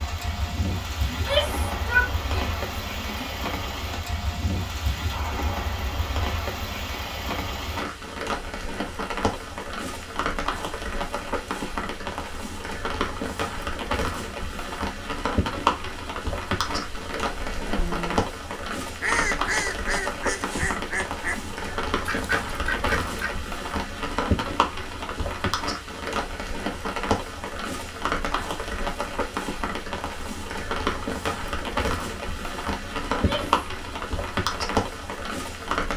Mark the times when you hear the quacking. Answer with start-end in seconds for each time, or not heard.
16.7-23.4.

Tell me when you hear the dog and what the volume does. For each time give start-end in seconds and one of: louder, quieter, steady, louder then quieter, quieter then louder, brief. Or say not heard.
not heard.